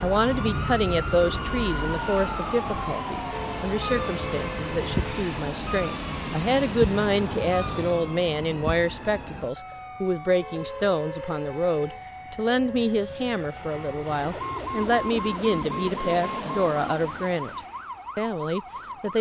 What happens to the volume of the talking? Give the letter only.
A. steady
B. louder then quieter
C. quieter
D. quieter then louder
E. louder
A.